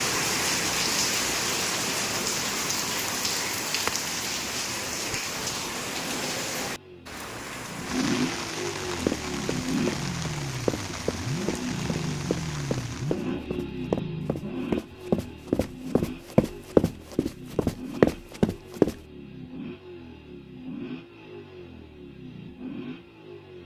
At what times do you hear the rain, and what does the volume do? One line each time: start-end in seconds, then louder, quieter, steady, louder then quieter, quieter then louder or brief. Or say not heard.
0.0-13.3 quieter.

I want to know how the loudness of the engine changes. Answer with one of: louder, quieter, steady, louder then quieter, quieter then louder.
quieter.